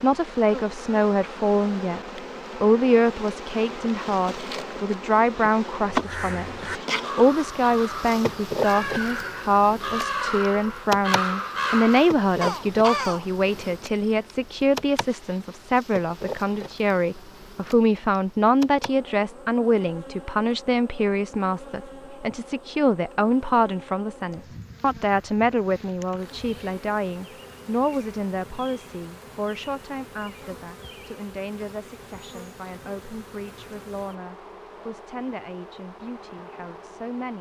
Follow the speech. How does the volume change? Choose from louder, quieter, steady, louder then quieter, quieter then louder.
quieter.